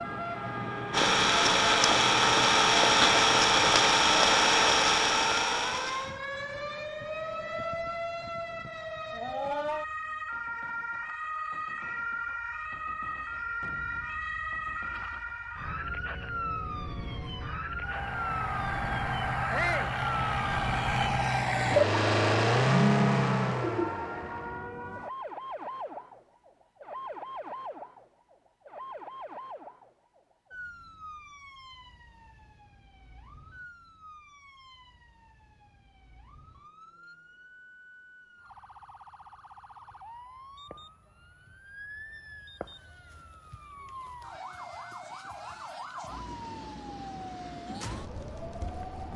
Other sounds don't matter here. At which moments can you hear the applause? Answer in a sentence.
The applause can't be heard in this clip.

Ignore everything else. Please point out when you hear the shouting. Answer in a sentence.
You can hear the shouting from 19.5 to 19.9 s.